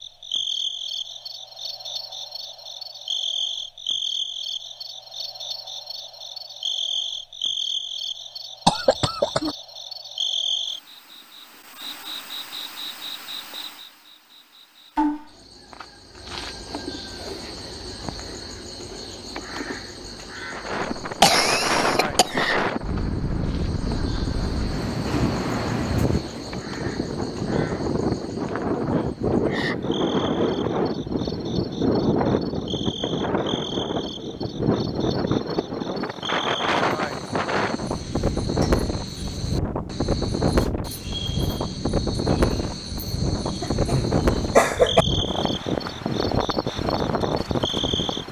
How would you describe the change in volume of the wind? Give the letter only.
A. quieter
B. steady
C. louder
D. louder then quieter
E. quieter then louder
B.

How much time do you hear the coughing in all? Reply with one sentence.
You can hear the coughing for 4 seconds altogether.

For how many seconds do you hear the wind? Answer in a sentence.
The wind can be heard for 28 seconds in total.